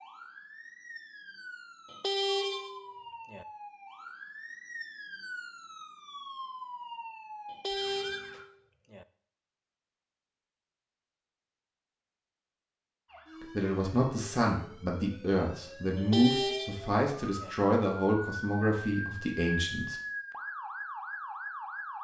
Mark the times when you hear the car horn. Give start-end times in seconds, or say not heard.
1.9-3.5, 7.5-9.1, 15.9-17.6.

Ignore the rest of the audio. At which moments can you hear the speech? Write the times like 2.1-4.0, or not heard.
13.4-19.9.